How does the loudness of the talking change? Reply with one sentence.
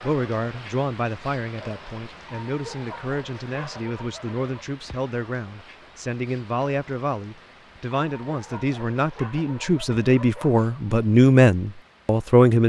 The volume of the talking goes up.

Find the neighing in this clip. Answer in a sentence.
The neighing can't be heard in this clip.